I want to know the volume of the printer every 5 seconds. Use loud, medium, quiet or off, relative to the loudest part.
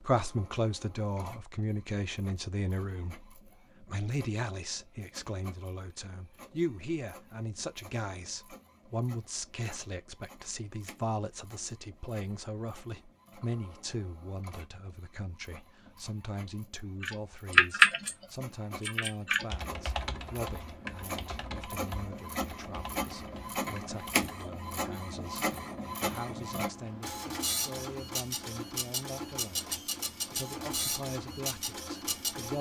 quiet, quiet, quiet, quiet, loud, loud, loud.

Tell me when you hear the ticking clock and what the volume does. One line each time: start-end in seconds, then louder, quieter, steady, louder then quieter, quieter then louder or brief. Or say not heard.
not heard.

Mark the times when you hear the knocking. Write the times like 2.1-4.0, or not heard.
not heard.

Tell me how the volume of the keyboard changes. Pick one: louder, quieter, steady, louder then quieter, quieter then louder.
quieter.